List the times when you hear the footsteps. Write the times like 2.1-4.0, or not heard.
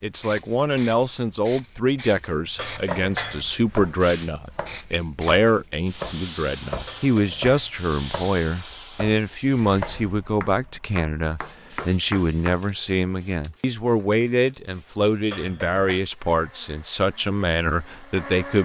not heard.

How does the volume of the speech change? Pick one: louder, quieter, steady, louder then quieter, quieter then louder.
steady.